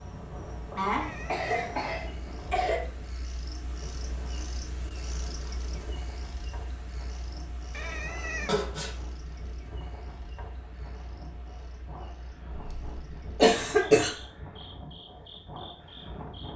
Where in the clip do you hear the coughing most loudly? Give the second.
14 s.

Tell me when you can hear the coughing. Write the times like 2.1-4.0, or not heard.
0.8-2.8, 8.4-8.9, 12.5-14.2.